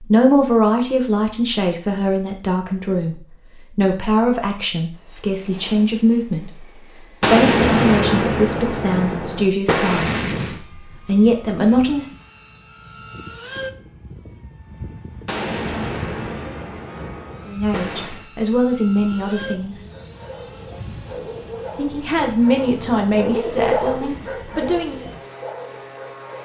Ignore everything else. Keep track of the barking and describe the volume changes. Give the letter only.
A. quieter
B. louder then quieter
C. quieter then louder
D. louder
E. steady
B.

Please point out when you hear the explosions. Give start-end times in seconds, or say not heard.
7.2-10.6, 15.2-18.2.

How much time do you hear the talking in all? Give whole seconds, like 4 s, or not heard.
18 s.